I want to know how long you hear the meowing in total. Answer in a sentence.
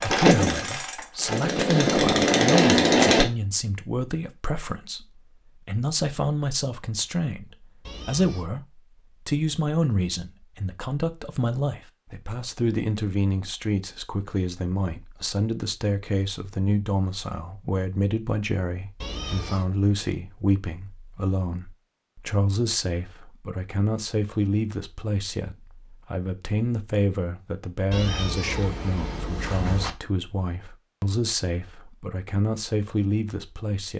You can hear the meowing for 3 seconds altogether.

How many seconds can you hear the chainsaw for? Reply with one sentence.
The chainsaw can be heard for 3 seconds in total.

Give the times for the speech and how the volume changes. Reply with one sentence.
You can hear the speech from 0.0 to 33.9 s, at a steady volume.